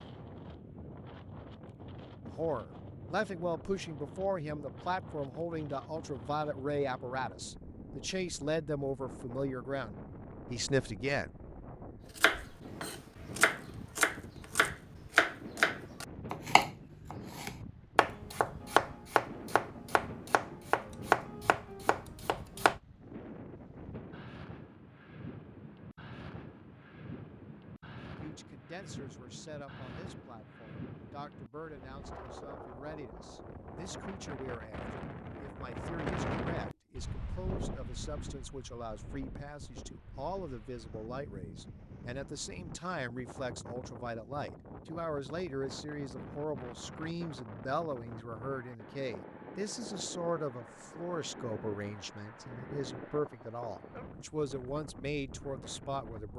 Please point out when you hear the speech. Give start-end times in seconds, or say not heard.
2.2-11.3, 28.2-56.3.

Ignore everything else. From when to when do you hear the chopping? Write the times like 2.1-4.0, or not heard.
12.2-22.8.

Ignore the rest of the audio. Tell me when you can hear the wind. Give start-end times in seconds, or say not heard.
0.0-56.3.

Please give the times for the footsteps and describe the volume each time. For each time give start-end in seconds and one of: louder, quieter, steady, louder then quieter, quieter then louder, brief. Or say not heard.
not heard.